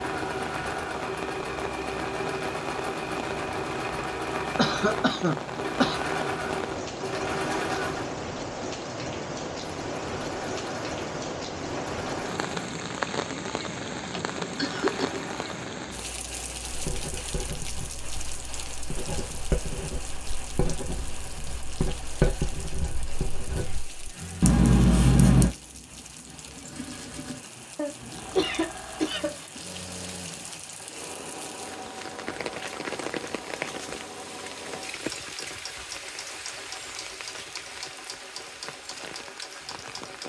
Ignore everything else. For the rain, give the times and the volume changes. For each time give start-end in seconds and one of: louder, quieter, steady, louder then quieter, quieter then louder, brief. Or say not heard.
0.0-40.2 quieter then louder.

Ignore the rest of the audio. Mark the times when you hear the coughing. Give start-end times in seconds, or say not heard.
4.5-6.0, 14.0-15.2, 27.8-29.5.